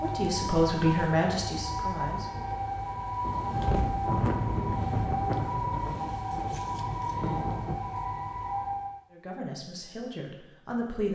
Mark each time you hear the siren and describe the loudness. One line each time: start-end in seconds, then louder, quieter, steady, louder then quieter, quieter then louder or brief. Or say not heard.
0.0-9.1 steady.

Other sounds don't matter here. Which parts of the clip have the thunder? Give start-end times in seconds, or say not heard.
3.2-7.8.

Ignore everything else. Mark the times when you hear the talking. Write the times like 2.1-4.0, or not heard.
0.0-2.5, 9.1-11.0.